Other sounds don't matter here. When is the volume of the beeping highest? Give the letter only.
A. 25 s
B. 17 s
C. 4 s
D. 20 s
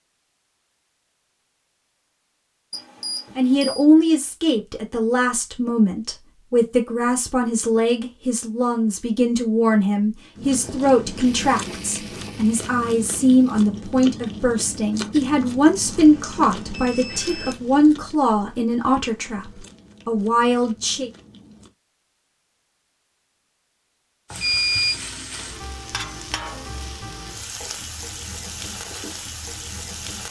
A.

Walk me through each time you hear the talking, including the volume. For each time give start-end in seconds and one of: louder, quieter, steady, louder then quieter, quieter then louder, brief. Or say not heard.
3.4-21.1 steady.